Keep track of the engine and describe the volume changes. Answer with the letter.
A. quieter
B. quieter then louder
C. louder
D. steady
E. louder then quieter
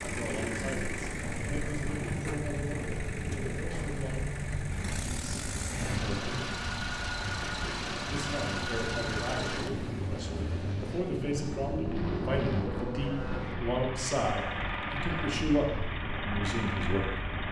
D.